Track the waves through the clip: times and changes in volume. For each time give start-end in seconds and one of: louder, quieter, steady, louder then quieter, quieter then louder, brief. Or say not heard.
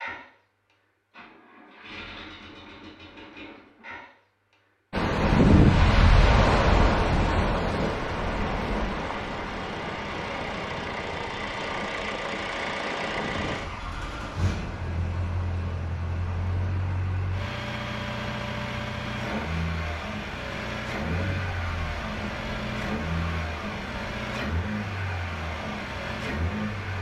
4.9-26.9 quieter.